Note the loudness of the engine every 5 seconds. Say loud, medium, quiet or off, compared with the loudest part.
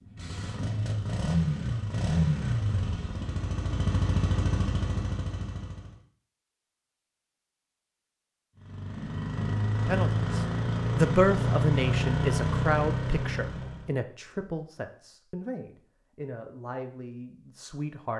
loud, medium, loud, off.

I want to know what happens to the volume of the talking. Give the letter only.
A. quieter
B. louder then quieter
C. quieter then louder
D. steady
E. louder
A.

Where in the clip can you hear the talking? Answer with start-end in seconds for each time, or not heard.
9.8-18.1.